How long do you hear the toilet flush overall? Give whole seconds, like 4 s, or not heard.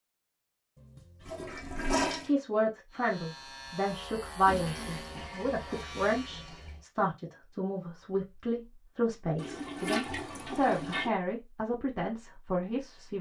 6 s.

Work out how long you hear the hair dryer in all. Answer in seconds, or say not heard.
not heard.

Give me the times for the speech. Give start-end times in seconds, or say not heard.
2.2-13.1.